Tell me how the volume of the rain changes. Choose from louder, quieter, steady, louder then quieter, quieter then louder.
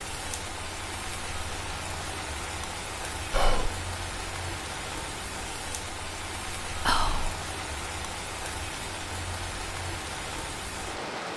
steady.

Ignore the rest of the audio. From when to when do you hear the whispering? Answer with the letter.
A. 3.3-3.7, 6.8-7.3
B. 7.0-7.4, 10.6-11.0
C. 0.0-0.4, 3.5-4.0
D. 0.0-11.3
A.